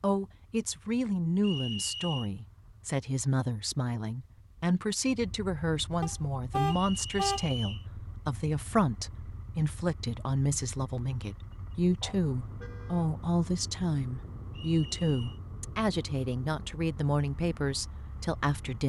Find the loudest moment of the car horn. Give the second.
7 s.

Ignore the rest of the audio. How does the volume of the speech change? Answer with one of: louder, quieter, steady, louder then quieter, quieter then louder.
steady.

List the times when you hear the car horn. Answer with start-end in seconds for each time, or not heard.
6.0-7.5, 12.0-13.1.